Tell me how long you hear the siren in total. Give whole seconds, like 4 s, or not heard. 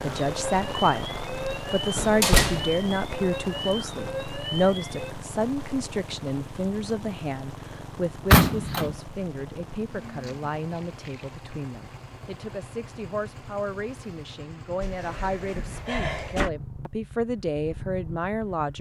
5 s.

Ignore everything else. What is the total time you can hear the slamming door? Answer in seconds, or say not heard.
3 s.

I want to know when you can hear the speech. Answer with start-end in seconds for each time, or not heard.
0.0-1.1, 1.7-18.7.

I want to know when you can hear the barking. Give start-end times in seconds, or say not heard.
not heard.